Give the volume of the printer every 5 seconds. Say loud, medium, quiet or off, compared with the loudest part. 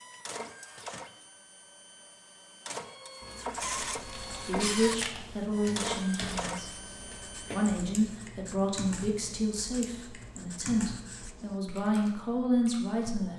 loud, loud, off.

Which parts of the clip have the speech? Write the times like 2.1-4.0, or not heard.
4.5-13.3.